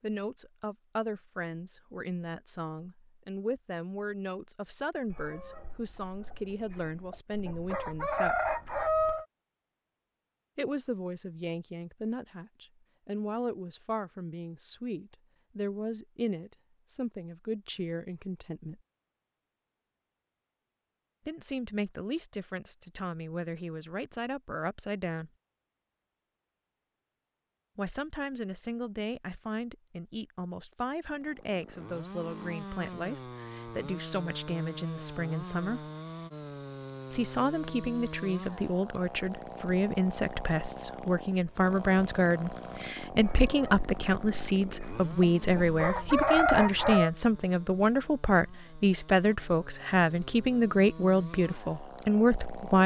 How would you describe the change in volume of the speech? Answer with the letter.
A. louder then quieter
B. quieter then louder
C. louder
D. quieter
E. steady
C.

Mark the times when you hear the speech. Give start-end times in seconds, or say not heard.
0.0-8.4, 10.6-18.8, 21.2-25.3, 27.8-35.9, 37.1-52.8.